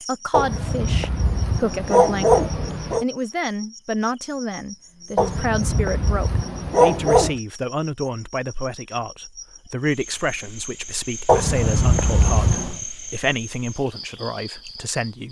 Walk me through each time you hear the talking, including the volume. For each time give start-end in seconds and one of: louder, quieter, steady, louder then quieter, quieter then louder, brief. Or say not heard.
0.1-15.2 steady.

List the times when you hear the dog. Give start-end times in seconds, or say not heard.
0.3-3.0, 5.2-7.3, 11.2-12.8.